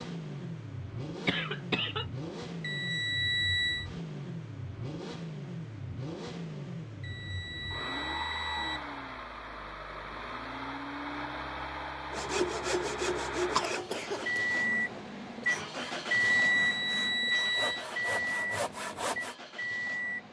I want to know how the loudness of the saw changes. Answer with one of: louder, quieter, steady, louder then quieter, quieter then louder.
quieter then louder.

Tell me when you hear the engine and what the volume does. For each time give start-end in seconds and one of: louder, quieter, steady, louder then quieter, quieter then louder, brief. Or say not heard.
0.0-20.2 louder.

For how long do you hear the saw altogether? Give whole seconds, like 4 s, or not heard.
7 s.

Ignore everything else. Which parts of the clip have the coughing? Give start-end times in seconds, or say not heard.
1.2-2.0, 13.5-14.9.